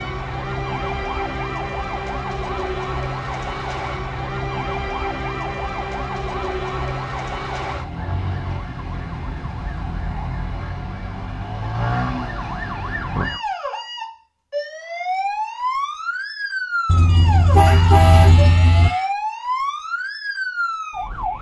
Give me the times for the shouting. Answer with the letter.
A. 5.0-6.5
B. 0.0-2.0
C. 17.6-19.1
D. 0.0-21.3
C.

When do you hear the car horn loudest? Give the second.
18 s.